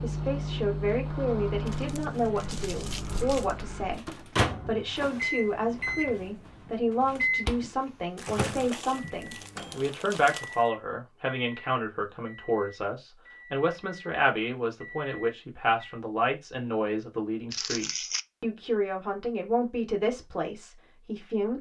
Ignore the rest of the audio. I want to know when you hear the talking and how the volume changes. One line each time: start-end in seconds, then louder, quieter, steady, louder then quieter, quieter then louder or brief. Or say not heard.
0.0-21.5 steady.